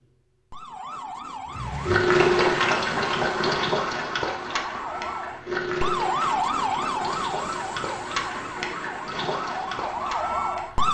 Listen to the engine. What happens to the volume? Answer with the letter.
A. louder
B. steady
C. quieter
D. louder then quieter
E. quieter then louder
C.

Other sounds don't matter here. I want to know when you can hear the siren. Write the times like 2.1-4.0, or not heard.
0.0-10.8.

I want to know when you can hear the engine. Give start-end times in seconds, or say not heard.
1.5-10.8.